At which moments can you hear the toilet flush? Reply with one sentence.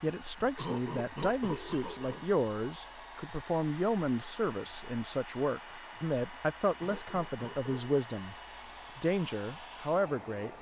You can't hear the toilet flush here.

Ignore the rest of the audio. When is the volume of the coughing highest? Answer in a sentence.
The volume of the coughing peaks at 1 second.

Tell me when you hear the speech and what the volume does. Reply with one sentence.
The speech can be heard from 0.0 to 10.5 s, at a steady volume.